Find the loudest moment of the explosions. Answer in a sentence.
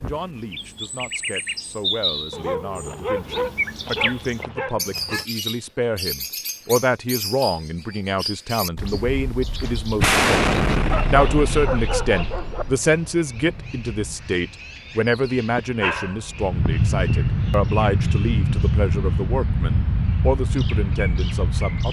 The volume of the explosions peaks at 10 seconds.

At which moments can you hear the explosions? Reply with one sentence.
You can hear the explosions from 10.0 to 12.6 s.